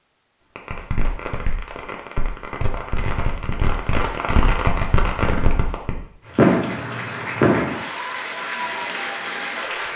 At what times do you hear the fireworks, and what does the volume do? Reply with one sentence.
The fireworks can be heard from 0.6 to 7.8 s, getting louder.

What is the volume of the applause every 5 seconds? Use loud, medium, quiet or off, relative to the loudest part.
off, loud.